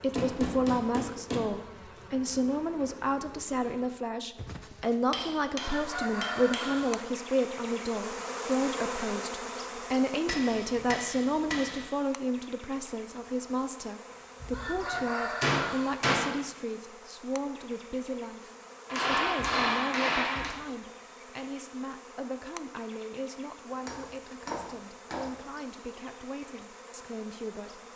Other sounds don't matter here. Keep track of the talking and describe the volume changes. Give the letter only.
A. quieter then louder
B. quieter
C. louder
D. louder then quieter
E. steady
B.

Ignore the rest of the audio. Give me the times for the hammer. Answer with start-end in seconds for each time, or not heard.
0.1-1.4, 5.1-7.0, 10.2-11.9, 14.4-16.4, 18.9-20.6, 23.9-25.3.